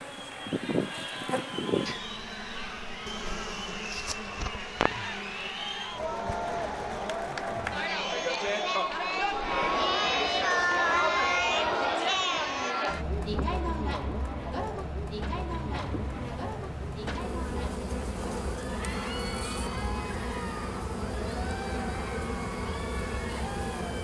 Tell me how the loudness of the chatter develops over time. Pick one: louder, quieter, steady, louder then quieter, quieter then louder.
louder then quieter.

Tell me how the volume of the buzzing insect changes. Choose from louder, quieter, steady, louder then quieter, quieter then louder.
quieter then louder.